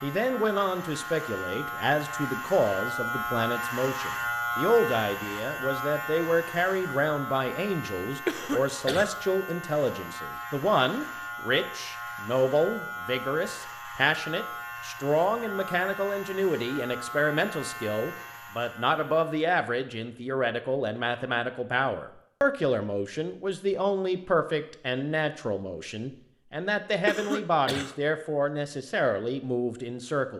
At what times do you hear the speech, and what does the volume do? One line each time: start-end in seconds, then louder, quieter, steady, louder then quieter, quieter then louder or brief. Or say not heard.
0.0-30.3 steady.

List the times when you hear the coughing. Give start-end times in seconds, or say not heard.
8.2-9.2, 27.1-27.9.